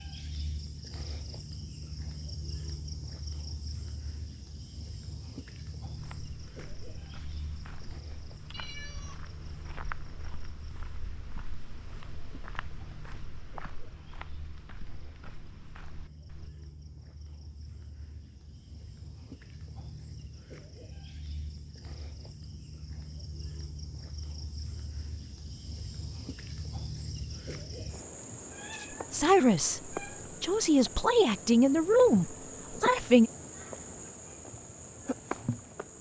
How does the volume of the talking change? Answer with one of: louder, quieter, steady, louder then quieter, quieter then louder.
louder then quieter.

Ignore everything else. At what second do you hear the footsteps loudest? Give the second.
10 s.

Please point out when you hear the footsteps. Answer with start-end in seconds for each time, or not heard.
6.0-16.5.